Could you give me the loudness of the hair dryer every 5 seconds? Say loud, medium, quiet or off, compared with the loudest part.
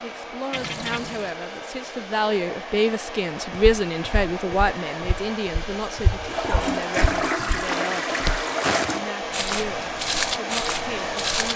medium, loud, loud.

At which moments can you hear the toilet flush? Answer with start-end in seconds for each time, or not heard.
0.5-1.4, 6.2-9.0.